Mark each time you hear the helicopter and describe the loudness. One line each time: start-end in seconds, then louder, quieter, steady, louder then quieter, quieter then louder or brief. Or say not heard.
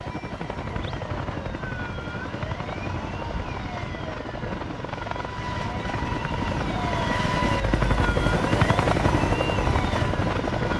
0.0-10.7 louder.